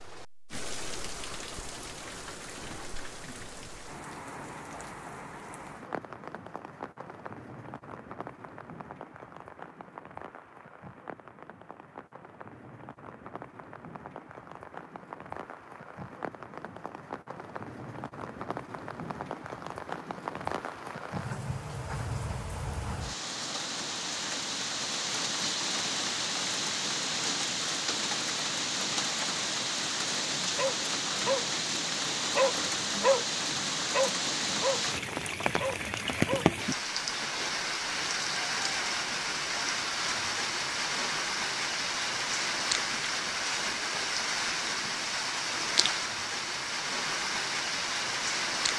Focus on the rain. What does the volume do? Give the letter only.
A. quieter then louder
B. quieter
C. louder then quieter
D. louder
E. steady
D.